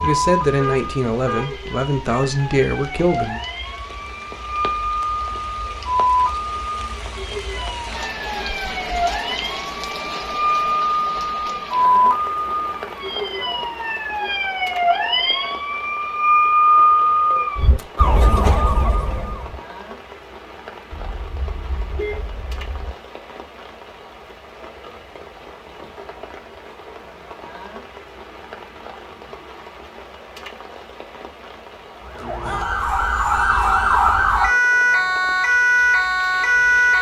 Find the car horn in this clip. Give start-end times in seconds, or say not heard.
0.0-1.6, 20.9-22.9.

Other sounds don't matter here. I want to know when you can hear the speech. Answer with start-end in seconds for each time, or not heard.
0.0-3.5.